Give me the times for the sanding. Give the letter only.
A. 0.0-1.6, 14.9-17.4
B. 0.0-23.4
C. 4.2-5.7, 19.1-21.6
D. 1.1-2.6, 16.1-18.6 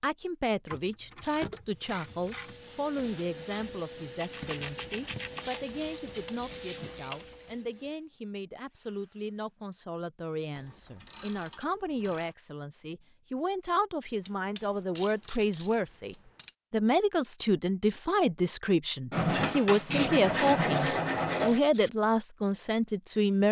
C.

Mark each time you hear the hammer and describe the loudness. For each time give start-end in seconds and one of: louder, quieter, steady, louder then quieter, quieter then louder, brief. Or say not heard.
not heard.